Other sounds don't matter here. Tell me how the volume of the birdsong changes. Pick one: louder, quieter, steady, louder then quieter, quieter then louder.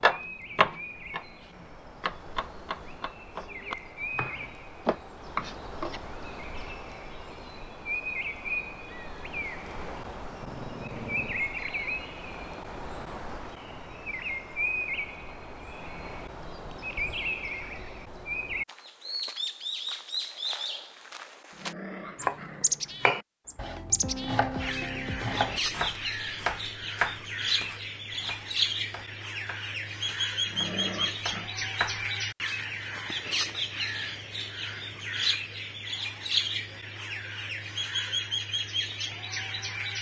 louder.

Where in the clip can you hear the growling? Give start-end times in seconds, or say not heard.
10.4-11.4, 21.5-23.2, 30.4-31.5.